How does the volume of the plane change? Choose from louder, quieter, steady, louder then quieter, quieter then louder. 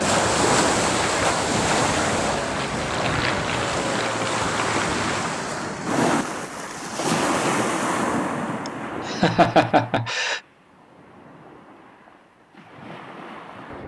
steady.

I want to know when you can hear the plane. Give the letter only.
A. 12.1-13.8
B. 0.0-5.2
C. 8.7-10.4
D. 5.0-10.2
B.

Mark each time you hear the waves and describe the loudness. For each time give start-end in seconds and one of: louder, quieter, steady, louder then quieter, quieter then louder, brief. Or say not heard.
0.0-13.8 quieter.